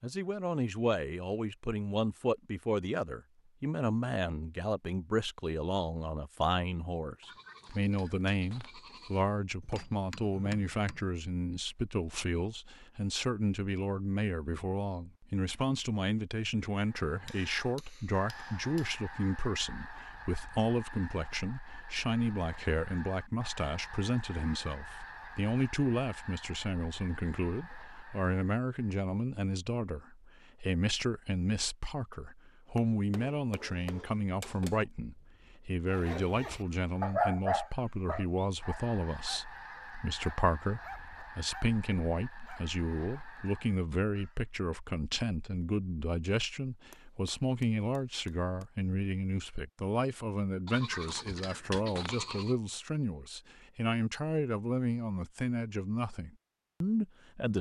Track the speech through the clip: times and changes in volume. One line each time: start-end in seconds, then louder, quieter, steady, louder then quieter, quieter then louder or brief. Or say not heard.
0.0-57.5 steady.